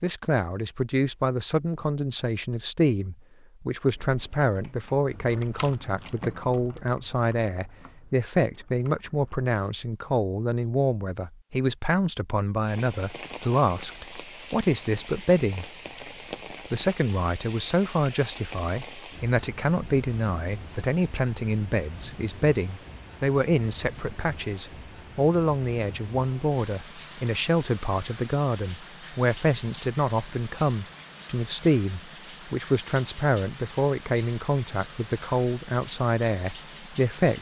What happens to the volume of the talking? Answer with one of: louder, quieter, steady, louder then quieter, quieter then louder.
steady.